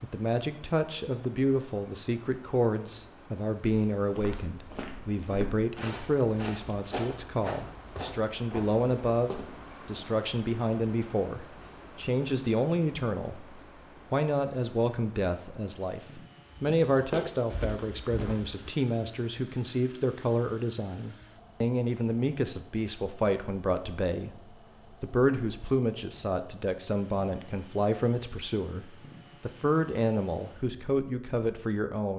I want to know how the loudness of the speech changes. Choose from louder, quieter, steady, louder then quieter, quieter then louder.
steady.